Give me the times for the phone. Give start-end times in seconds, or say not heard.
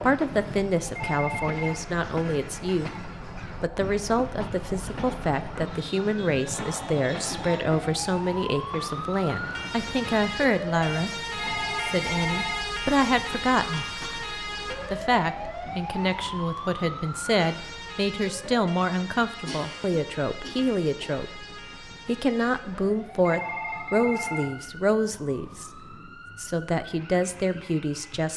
0.9-1.8, 11.3-12.7, 23.2-24.5.